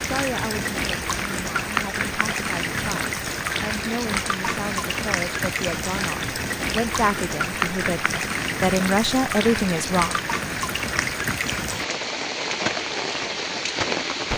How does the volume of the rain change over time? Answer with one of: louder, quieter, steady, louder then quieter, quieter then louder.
steady.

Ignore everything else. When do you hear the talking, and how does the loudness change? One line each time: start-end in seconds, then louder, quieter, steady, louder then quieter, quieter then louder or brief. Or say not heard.
0.0-10.2 louder.